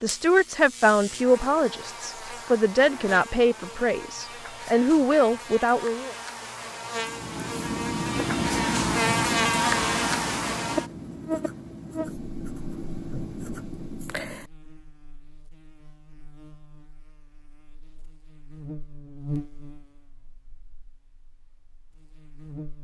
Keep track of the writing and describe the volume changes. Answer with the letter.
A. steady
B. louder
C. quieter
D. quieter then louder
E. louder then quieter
C.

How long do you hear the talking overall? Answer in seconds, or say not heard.
6 s.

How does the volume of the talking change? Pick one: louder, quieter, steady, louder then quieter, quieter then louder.
quieter then louder.